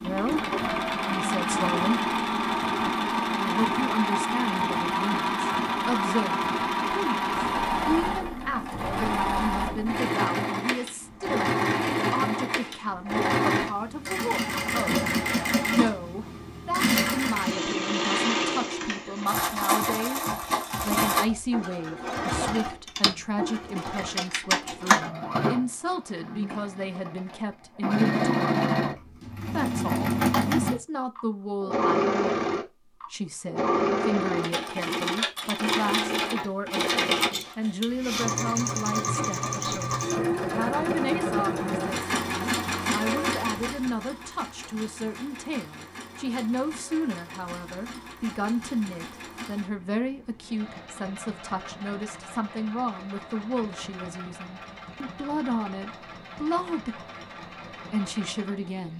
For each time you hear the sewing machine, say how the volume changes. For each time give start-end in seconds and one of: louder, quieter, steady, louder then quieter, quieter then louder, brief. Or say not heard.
0.0-58.9 quieter.